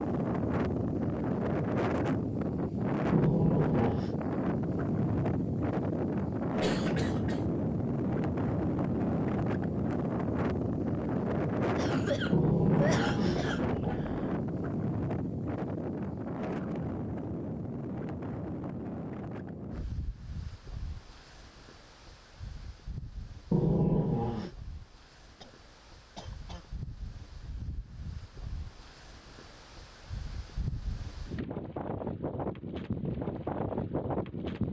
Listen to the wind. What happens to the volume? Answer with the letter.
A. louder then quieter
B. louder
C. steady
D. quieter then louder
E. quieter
D.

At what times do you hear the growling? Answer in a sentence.
The growling can be heard from 3.1 to 4.2 s, from 12.3 to 14.3 s and from 23.5 to 24.5 s.